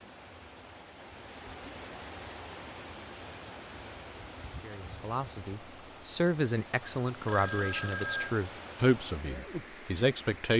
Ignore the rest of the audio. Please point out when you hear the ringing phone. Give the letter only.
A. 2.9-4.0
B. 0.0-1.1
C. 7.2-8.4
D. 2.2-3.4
C.